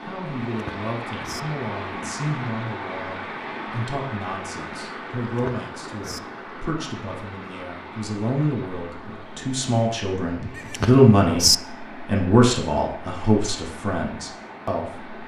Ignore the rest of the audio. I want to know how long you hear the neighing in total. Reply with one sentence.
You can hear the neighing for 3 seconds altogether.